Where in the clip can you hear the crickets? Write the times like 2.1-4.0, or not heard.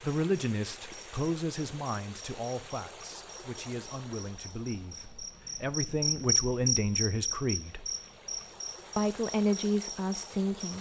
0.1-10.7.